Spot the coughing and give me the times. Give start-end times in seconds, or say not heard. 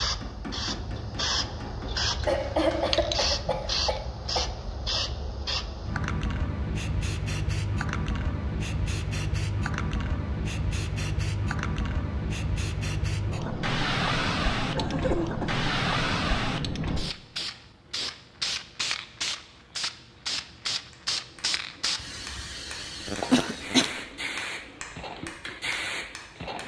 2.2-5.0, 14.8-15.7, 23.1-23.9.